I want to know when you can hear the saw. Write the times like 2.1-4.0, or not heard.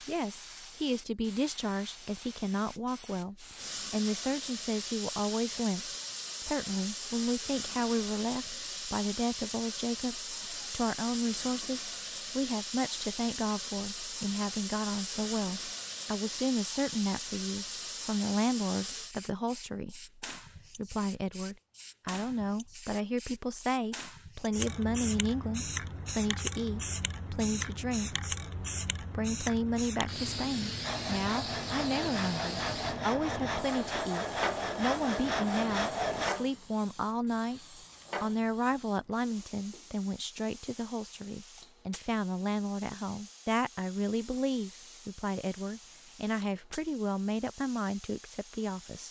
30.8-36.3.